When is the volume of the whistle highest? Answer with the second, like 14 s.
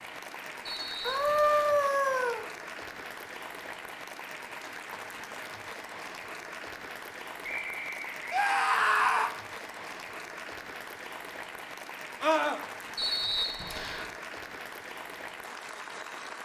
13 s.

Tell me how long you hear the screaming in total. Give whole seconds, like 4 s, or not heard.
3 s.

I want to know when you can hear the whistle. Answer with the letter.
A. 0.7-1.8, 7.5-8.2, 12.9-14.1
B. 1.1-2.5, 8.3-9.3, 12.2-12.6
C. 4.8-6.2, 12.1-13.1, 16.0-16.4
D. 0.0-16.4
A.